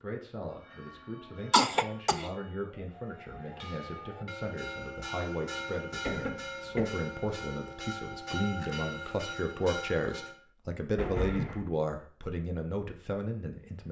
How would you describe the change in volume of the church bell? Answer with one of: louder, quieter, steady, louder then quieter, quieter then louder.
louder.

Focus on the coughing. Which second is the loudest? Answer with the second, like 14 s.
2 s.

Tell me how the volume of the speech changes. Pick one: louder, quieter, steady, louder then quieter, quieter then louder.
louder.